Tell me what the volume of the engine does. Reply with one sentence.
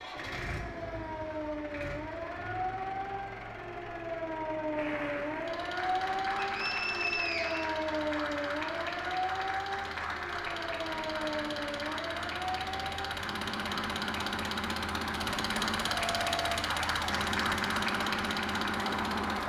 The volume of the engine goes up.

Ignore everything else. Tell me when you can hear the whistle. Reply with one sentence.
The whistle can be heard from 6.4 to 8.3 s.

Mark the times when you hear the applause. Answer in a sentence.
You can hear the applause from 4.7 to 19.4 s.